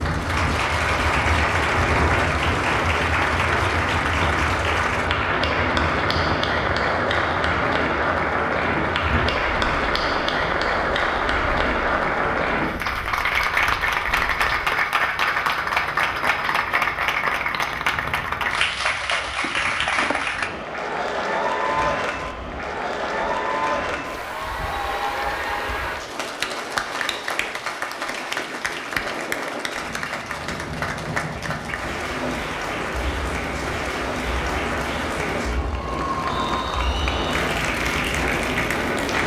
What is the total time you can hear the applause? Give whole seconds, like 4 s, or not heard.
39 s.